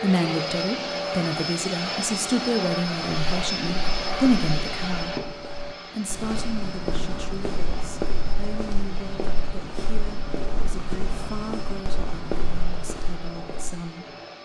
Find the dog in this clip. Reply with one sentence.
You can't hear the dog here.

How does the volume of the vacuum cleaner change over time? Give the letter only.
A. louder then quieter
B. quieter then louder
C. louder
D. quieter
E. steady
D.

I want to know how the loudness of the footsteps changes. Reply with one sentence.
The volume of the footsteps goes up.